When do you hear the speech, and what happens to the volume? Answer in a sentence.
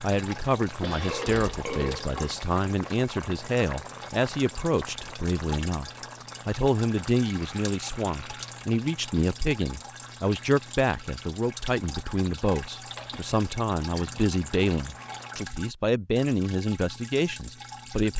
You can hear the speech from 0.0 to 18.1 s, at a steady volume.